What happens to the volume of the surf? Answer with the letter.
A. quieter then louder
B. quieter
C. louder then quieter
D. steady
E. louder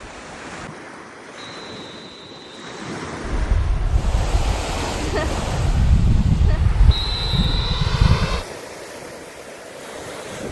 C.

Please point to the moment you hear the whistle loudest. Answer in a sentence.
The volume of the whistle peaks at 7 seconds.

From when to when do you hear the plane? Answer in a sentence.
You can hear the plane from 3.2 to 8.4 s.